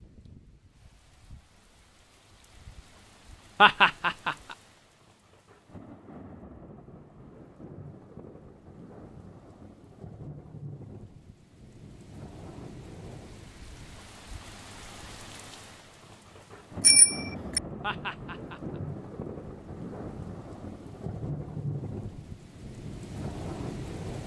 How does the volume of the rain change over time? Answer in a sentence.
The loudness of the rain goes up.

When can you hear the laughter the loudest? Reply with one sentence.
The loudest moment of the laughter is at 4 seconds.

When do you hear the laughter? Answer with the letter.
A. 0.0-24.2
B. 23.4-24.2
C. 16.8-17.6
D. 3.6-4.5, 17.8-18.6
D.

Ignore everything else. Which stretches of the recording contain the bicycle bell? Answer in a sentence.
The bicycle bell can be heard from 16.8 to 17.6 s.